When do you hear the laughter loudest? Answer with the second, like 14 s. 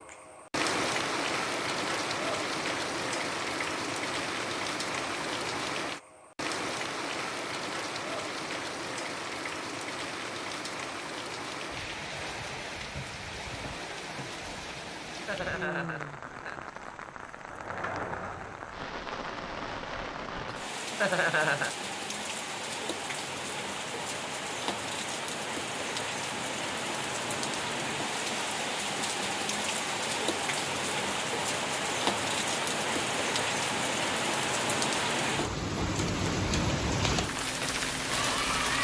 21 s.